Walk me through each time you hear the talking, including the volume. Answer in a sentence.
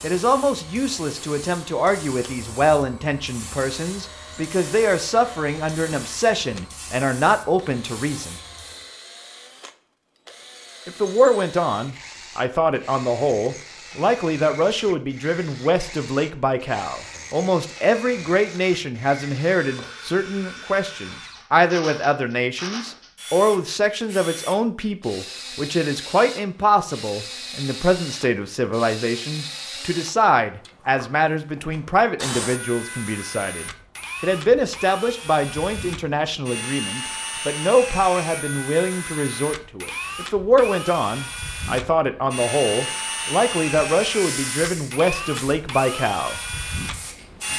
The talking can be heard from 0.0 to 8.3 s, at a steady volume; and from 10.8 to 46.4 s, at a steady volume.